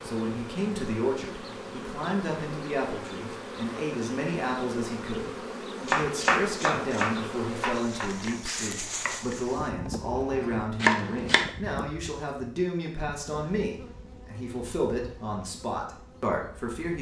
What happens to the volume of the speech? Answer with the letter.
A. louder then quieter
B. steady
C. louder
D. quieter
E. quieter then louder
B.